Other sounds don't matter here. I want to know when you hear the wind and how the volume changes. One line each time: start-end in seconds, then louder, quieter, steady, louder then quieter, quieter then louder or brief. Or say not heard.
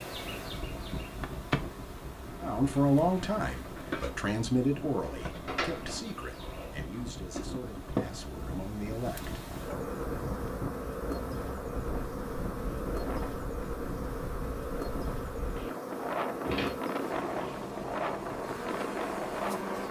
0.0-19.8 louder.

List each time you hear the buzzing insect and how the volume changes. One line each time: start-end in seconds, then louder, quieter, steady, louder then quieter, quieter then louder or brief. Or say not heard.
0.0-19.8 steady.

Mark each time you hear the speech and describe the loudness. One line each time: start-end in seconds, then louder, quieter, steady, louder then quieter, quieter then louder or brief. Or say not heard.
2.4-9.3 quieter.